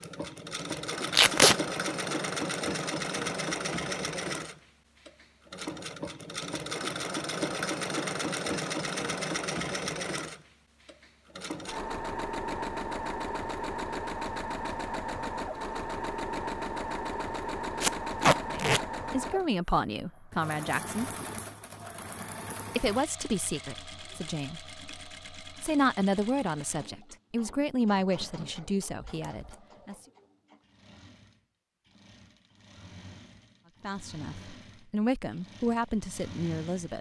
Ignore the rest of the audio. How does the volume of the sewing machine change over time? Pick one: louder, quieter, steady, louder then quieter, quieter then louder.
quieter.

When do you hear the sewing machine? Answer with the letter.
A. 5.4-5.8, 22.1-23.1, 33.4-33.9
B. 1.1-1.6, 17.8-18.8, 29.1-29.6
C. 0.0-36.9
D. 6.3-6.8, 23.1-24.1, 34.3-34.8
C.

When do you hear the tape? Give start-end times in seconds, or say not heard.
1.1-1.6, 17.8-18.8, 29.1-29.6.